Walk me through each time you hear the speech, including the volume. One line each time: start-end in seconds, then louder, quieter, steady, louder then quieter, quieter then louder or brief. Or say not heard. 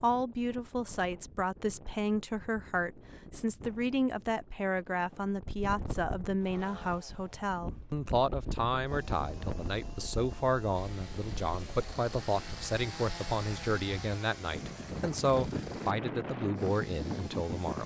0.0-17.8 steady.